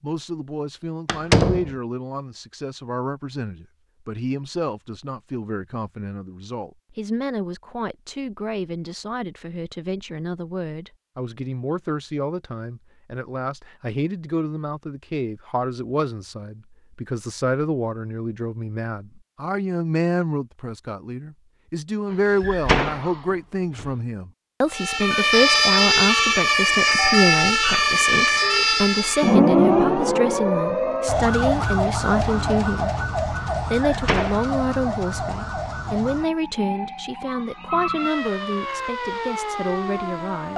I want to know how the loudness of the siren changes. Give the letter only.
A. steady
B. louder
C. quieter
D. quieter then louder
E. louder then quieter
C.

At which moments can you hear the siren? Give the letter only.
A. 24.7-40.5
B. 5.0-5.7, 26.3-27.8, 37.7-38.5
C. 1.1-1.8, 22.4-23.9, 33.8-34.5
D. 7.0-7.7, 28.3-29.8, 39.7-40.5
A.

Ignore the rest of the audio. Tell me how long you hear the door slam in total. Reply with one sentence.
You can hear the door slam for 3 seconds altogether.